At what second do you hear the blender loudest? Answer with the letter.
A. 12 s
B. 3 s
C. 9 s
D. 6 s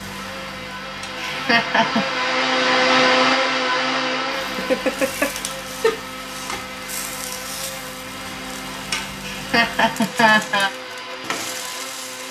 B.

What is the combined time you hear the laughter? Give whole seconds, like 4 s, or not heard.
4 s.